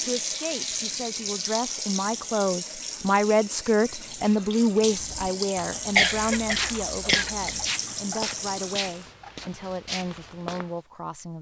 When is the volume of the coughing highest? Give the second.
6 s.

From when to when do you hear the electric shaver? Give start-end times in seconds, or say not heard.
not heard.